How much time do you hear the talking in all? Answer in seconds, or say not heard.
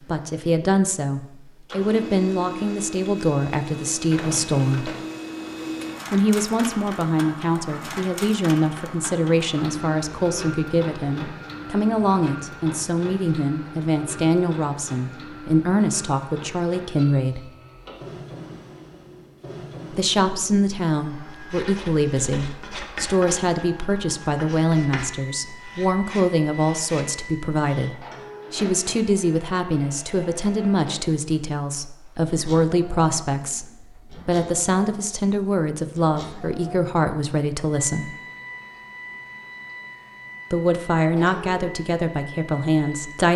37 s.